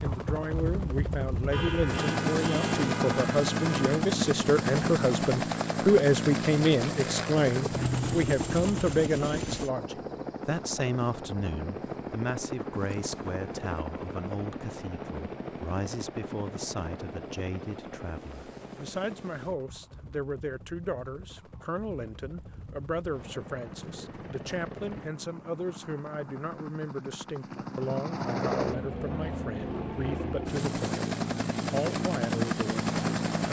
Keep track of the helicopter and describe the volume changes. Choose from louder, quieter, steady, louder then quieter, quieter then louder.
quieter then louder.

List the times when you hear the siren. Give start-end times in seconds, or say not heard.
not heard.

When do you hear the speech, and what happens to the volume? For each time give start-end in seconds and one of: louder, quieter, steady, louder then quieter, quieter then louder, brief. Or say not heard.
0.0-31.0 quieter
31.6-33.4 brief.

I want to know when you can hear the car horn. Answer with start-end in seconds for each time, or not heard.
1.5-4.0.